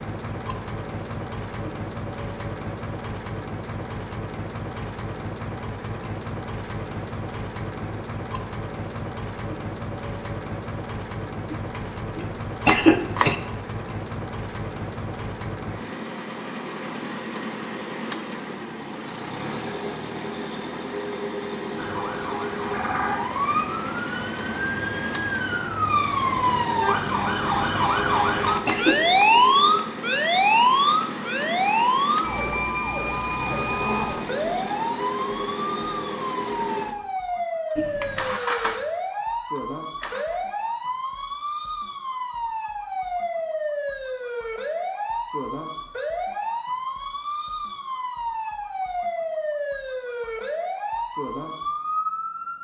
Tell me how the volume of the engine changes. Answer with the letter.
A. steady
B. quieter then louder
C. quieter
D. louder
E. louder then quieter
A.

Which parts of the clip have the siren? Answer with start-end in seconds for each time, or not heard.
21.8-52.5.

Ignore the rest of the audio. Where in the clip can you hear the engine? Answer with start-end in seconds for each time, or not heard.
0.0-40.4.